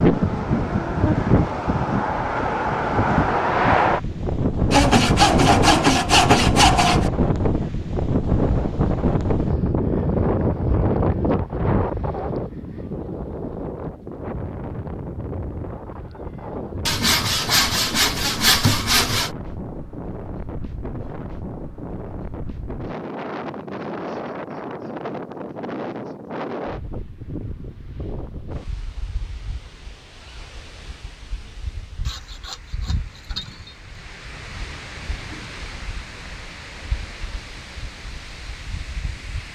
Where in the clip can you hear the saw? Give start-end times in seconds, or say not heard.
4.7-7.1, 16.9-19.3, 32.0-33.9.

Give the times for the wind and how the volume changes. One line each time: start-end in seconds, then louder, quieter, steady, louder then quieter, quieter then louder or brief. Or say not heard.
0.0-39.5 quieter.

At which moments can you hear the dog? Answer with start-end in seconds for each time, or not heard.
not heard.